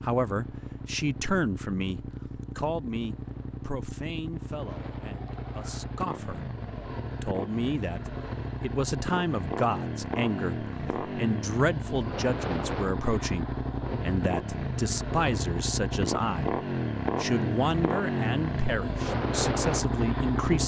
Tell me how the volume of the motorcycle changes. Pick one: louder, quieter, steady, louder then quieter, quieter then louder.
louder.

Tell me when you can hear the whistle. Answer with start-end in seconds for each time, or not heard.
not heard.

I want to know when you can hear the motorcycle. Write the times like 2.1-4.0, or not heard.
0.0-20.6.